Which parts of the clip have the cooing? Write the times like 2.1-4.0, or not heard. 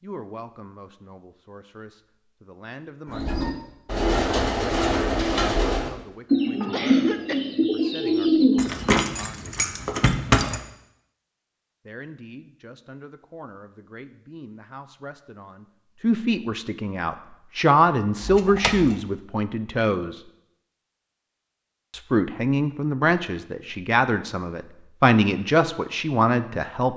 3.0-8.9.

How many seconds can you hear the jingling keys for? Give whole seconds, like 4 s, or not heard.
3 s.